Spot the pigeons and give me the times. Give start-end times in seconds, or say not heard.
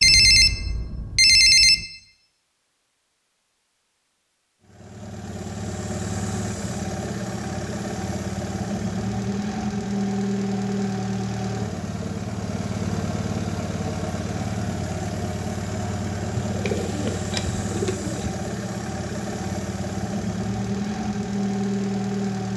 16.4-18.4.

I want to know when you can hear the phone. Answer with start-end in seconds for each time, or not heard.
0.0-1.9, 16.6-17.3.